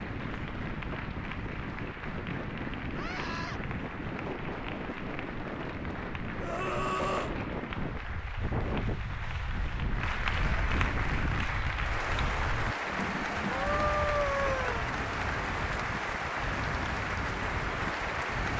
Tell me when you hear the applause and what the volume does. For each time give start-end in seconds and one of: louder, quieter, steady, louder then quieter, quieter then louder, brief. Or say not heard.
0.0-18.5 louder.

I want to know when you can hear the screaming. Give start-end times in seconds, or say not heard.
3.0-3.6, 6.4-7.3, 13.4-14.8.